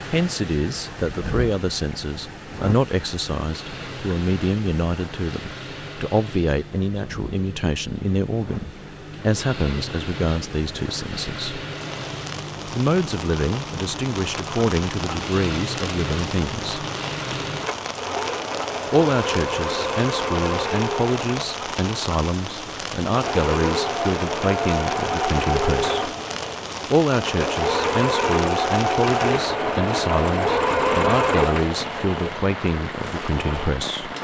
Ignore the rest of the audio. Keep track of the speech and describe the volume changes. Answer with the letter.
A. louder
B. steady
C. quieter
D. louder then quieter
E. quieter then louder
B.